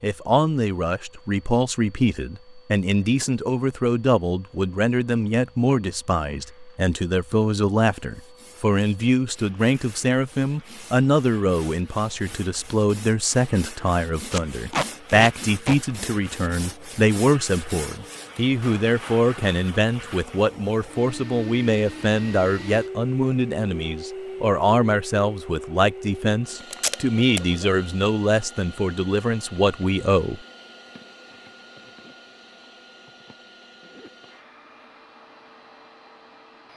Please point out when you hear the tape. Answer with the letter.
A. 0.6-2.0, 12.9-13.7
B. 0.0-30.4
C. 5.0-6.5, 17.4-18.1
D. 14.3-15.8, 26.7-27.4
D.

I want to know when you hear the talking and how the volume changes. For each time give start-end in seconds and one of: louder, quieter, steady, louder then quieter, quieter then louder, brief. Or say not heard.
0.0-30.4 steady.